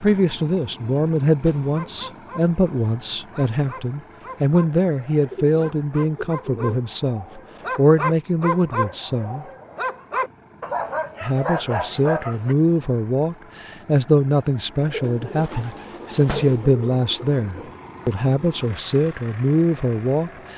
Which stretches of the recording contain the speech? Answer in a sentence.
You can hear the speech from 0.0 to 9.4 s and from 11.2 to 20.5 s.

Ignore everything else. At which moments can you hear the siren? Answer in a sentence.
You can't hear the siren here.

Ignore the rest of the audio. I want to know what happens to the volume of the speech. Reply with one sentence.
The volume of the speech stays about the same.